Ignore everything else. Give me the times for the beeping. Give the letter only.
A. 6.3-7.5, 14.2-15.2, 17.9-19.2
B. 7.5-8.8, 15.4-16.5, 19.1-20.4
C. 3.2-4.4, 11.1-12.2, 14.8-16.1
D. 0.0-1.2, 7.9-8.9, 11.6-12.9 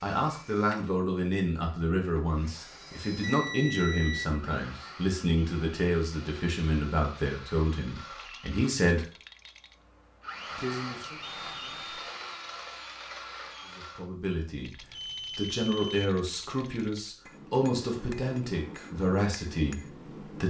C.